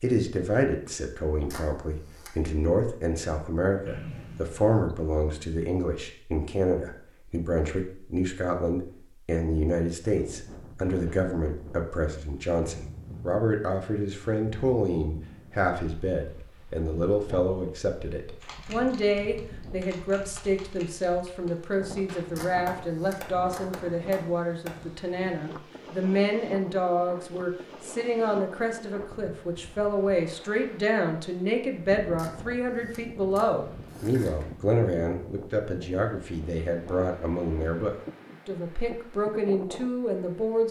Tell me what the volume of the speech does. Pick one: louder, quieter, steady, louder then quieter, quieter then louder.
steady.